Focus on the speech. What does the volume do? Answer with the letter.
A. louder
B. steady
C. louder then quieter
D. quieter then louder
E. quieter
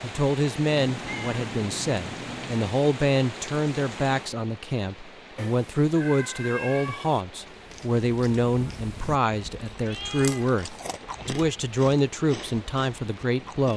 B.